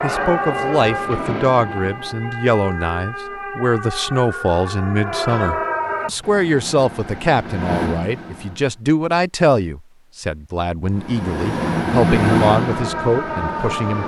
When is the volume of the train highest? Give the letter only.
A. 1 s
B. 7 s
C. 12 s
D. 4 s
C.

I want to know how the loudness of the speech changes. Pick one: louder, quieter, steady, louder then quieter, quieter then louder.
steady.